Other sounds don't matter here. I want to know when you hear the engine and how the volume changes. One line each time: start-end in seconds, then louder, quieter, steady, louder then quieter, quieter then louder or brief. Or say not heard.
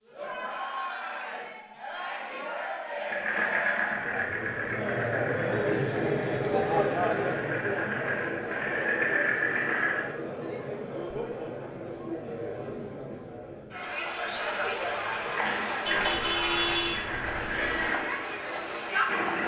3.0-10.2 quieter then louder
15.2-19.4 quieter.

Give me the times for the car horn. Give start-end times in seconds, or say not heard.
5.5-6.8, 15.8-17.9.